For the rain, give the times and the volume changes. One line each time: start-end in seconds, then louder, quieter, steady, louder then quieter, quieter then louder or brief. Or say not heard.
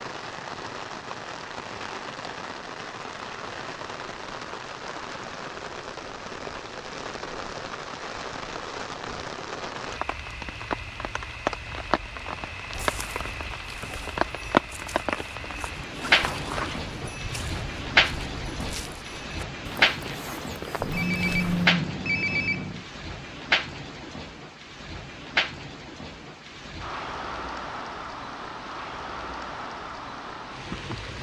0.0-31.1 louder then quieter.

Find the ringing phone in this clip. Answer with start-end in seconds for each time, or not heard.
20.8-22.9.